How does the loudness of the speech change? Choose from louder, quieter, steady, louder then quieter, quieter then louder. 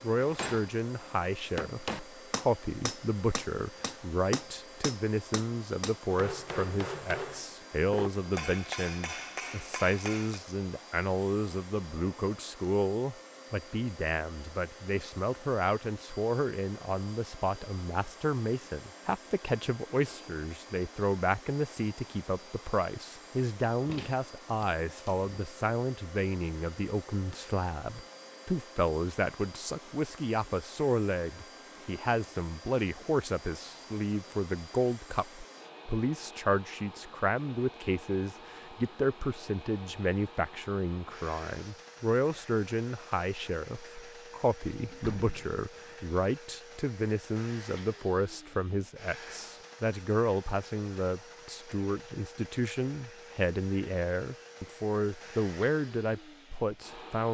steady.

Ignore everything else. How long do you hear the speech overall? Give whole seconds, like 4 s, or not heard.
57 s.